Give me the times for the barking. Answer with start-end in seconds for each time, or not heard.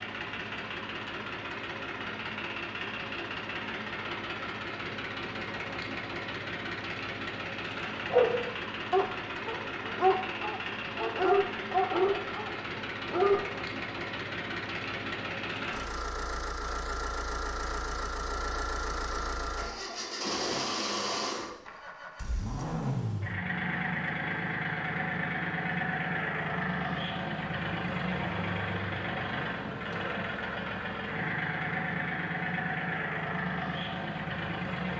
8.1-13.4.